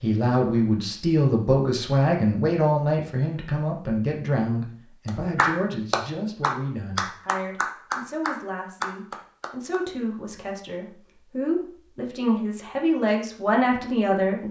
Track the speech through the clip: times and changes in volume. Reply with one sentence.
The speech can be heard from 0.0 to 14.4 s, getting quieter then louder.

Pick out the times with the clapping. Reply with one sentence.
You can hear the clapping from 5.0 to 9.8 s.